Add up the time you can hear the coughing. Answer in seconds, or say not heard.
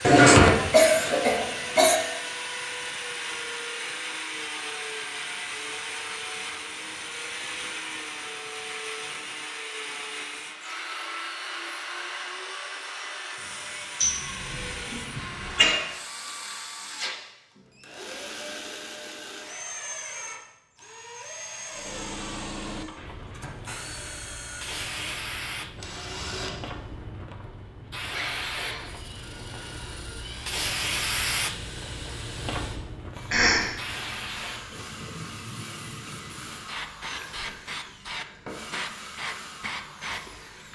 4 s.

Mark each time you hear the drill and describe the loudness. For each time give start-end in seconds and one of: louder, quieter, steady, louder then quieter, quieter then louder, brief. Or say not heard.
0.0-40.7 quieter.